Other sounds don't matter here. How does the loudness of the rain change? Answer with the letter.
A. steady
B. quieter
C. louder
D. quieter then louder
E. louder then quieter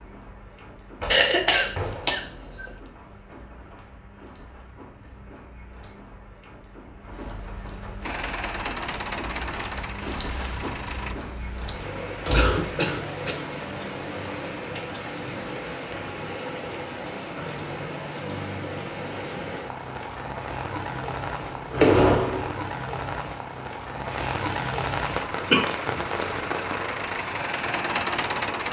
C.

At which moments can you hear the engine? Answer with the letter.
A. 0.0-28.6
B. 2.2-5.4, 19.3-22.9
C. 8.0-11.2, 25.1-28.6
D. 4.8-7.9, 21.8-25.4
C.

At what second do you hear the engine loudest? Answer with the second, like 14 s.
28 s.